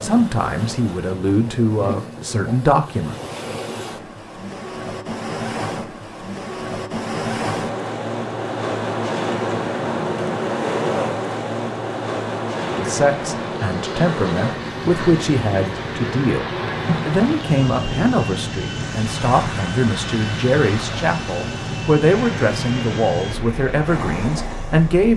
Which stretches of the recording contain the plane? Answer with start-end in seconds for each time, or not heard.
12.6-25.1.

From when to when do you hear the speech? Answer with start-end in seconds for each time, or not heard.
0.0-3.1, 12.7-25.1.